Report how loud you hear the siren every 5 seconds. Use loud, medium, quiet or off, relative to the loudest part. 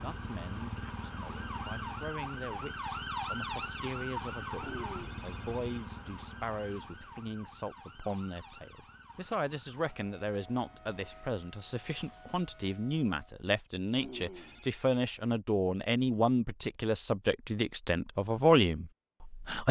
loud, medium, quiet, off.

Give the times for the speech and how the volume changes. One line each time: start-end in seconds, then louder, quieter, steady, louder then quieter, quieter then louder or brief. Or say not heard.
0.0-19.6 louder.